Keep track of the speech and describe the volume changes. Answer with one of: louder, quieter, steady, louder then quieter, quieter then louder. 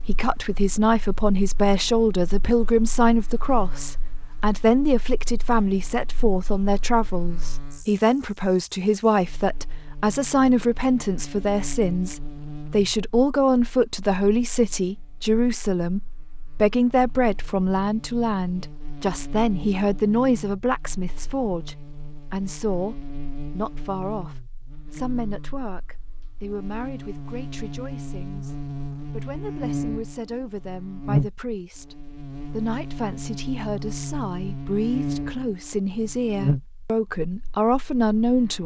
quieter then louder.